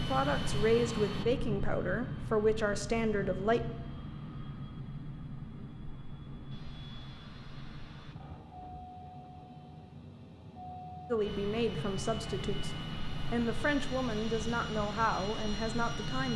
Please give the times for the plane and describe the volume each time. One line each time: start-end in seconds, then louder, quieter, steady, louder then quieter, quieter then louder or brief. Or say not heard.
0.0-16.3 quieter then louder.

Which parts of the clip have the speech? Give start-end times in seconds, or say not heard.
0.1-3.6, 11.1-16.3.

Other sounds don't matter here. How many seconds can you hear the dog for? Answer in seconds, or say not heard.
not heard.